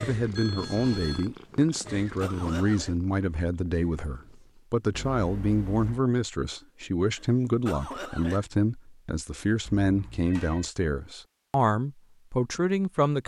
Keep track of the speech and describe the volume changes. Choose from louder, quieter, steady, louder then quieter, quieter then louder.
steady.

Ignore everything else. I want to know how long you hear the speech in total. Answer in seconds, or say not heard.
13 s.